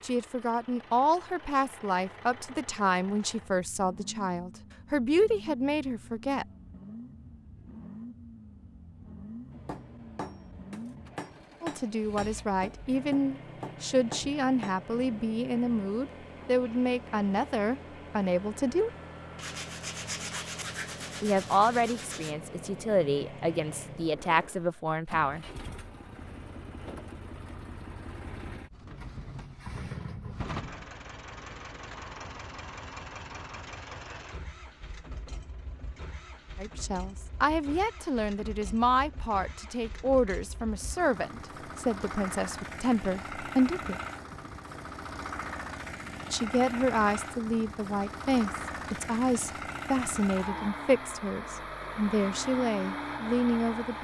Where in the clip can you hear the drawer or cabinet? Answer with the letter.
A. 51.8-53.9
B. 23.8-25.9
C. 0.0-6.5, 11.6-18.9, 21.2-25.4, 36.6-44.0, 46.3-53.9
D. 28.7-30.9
D.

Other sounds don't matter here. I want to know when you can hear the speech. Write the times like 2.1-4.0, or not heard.
0.0-6.5, 11.6-18.9, 21.2-25.4, 36.6-44.0, 46.3-53.9.